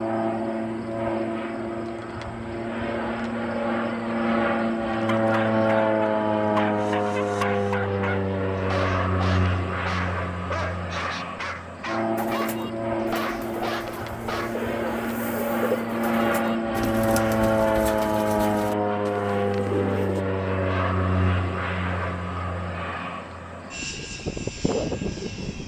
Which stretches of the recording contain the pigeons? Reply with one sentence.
The pigeons can be heard from 12.2 to 20.2 s.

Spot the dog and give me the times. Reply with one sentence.
The dog can be heard from 5.0 to 14.6 s.